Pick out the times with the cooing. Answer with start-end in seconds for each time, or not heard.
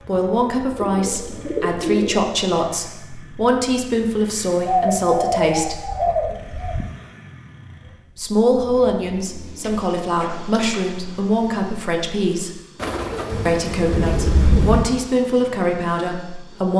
0.8-2.3, 4.7-6.8, 8.8-10.8, 12.8-14.8.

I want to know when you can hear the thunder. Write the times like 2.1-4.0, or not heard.
13.3-14.8.